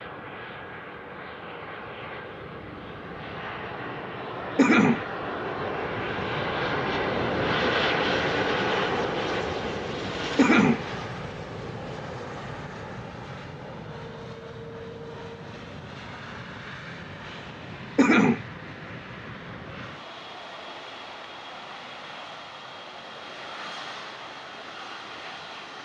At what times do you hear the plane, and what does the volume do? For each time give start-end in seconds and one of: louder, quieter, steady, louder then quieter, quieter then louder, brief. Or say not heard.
0.0-25.8 louder then quieter.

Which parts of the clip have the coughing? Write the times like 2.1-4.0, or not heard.
4.5-5.0, 10.3-10.8, 17.9-18.4.